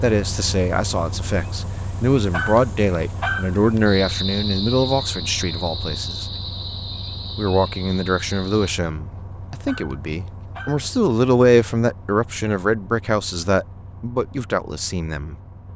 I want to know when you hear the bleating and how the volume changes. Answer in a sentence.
You can't hear the bleating here.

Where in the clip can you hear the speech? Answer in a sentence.
You can hear the speech from 0.0 to 6.2 s and from 7.3 to 15.3 s.